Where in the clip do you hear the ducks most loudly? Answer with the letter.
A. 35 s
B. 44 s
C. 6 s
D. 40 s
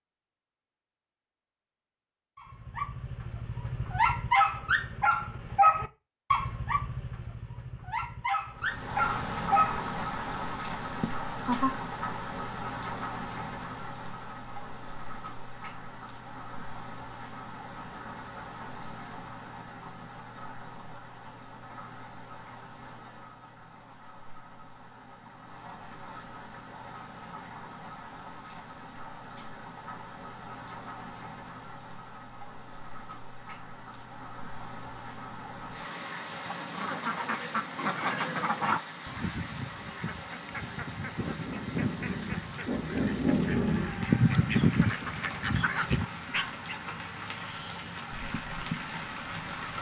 B.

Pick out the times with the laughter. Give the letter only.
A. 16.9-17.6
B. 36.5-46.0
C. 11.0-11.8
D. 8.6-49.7
C.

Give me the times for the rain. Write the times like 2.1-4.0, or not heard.
8.6-49.7.